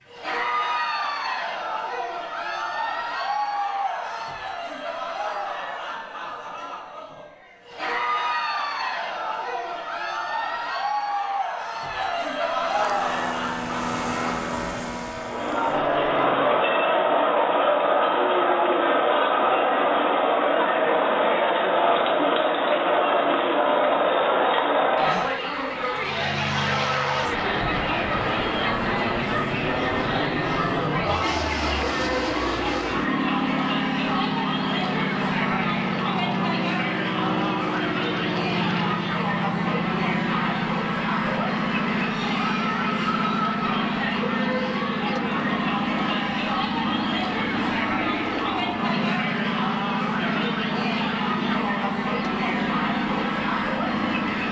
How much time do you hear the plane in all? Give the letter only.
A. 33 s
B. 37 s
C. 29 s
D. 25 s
A.